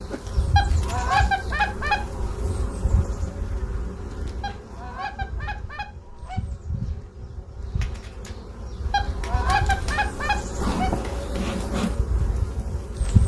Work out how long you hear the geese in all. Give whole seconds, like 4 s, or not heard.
6 s.